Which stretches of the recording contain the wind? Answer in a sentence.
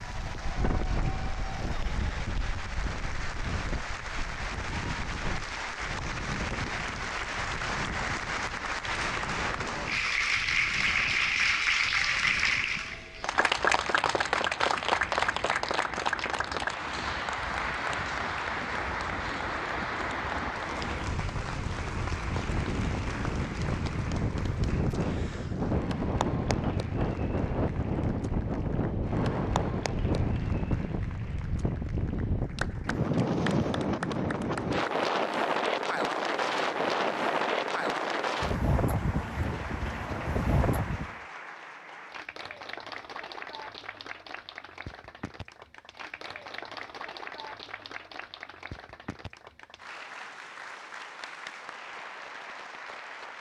The wind can be heard from 0.0 to 41.1 s.